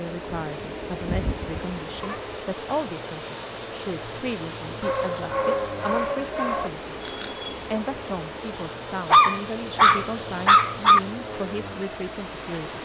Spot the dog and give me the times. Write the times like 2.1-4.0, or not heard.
0.4-2.2, 4.8-6.7, 9.1-11.0.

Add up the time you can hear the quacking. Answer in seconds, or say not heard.
not heard.